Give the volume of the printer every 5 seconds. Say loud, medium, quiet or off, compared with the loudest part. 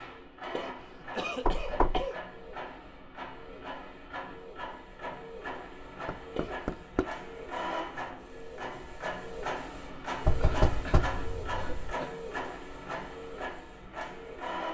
medium, loud, loud.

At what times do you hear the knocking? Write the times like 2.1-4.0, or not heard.
1.4-2.0, 6.0-7.0, 10.2-11.9.